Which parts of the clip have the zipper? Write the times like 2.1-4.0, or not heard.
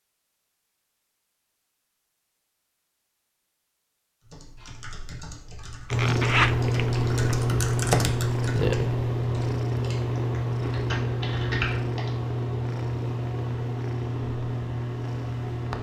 5.9-7.2.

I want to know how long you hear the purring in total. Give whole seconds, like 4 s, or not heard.
10 s.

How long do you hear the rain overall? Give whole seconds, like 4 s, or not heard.
not heard.